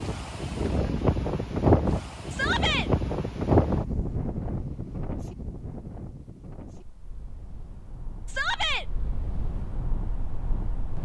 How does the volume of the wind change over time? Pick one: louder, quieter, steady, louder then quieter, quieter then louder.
quieter then louder.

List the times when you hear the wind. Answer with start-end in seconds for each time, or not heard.
0.0-11.0.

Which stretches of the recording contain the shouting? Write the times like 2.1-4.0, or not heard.
2.3-2.9, 8.2-8.8.